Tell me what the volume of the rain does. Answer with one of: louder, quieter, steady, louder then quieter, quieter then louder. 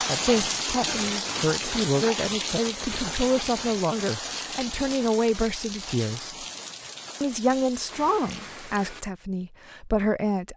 quieter.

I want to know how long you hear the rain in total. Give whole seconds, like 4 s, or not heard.
9 s.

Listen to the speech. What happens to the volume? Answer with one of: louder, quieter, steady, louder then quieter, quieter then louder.
steady.